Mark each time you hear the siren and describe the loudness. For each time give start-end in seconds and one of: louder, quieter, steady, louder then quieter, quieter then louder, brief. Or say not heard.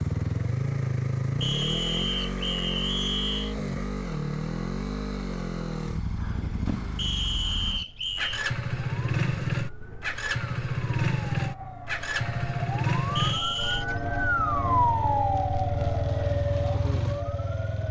7.8-17.8 louder then quieter.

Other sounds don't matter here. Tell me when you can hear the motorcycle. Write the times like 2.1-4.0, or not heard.
0.0-17.8.